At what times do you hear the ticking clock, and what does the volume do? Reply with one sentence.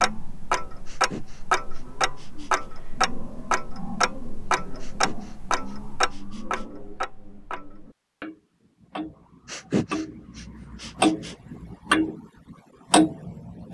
You can hear the ticking clock from 0.0 to 13.6 s, getting quieter then louder.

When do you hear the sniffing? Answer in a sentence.
The sniffing can be heard from 0.8 to 2.6 s, from 4.8 to 6.7 s and from 9.4 to 11.3 s.